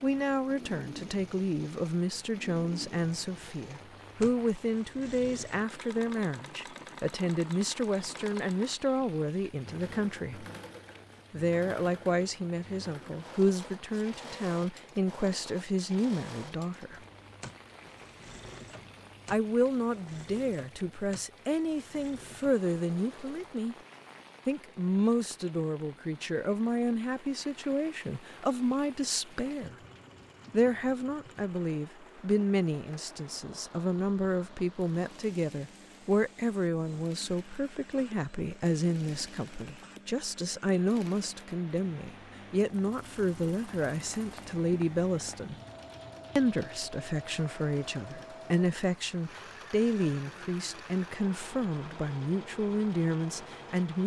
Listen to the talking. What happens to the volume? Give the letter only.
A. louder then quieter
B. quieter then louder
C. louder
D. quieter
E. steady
E.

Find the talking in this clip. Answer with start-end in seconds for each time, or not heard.
0.0-10.4, 11.3-17.0, 19.3-23.8, 24.4-29.8, 30.5-45.5, 46.4-54.0.